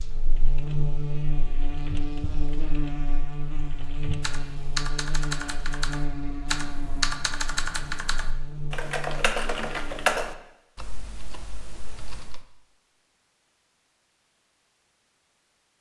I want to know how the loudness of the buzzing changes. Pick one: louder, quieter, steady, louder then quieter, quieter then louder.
quieter.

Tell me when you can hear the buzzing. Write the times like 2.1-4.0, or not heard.
0.0-10.3.